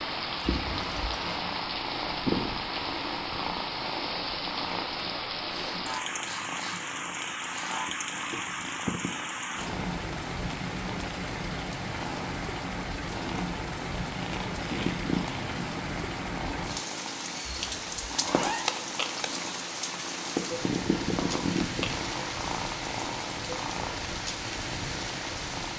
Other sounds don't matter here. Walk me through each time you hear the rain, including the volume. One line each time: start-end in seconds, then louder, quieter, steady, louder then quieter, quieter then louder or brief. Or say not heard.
0.0-25.7 steady.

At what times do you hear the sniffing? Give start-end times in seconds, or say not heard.
5.5-7.8.